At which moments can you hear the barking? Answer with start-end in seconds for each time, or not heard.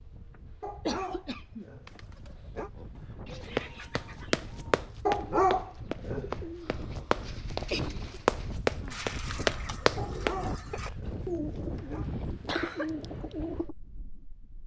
0.6-2.7, 5.0-6.4, 9.9-12.1.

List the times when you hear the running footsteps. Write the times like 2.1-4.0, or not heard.
3.5-7.7, 8.2-10.3.